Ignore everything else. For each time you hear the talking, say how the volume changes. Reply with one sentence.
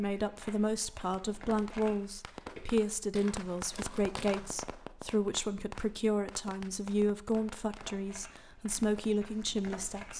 The talking can be heard from 0.0 to 10.1 s, at a steady volume.